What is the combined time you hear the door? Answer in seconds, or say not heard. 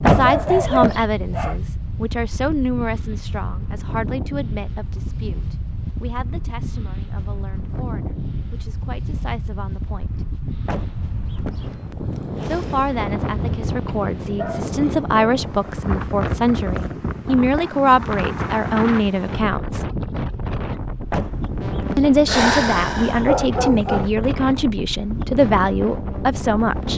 3 s.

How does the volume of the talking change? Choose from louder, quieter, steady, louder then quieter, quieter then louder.
quieter then louder.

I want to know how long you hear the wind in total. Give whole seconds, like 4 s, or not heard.
27 s.